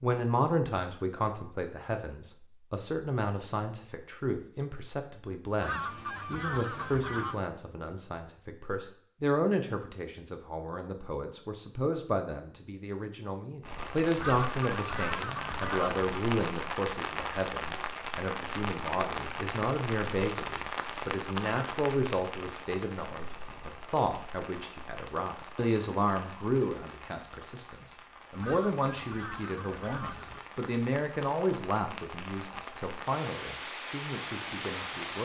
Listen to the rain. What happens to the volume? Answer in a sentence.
The loudness of the rain goes down, then up.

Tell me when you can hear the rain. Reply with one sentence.
You can hear the rain from 13.6 to 35.2 s.